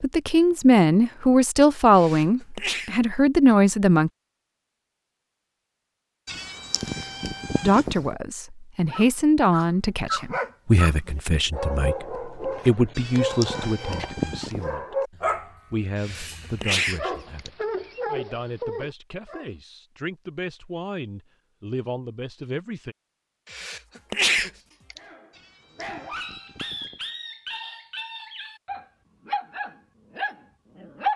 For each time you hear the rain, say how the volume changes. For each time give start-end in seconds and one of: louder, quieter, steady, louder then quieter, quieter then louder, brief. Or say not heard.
not heard.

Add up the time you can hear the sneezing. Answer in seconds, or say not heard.
4 s.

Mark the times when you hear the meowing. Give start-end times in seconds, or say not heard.
6.2-8.2, 12.9-14.8, 25.3-27.0.